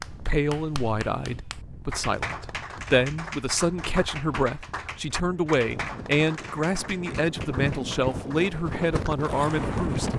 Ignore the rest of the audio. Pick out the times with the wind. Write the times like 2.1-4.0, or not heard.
0.0-10.1.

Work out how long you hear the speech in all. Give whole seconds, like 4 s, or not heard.
10 s.